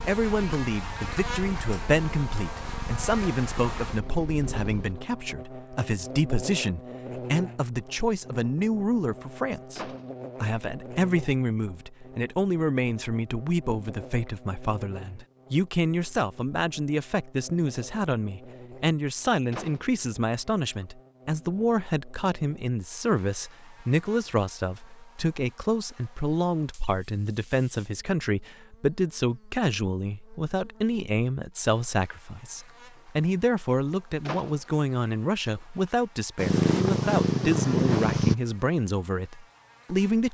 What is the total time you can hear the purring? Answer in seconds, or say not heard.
7 s.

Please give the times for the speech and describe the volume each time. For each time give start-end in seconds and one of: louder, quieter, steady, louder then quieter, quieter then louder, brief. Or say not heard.
0.1-40.3 steady.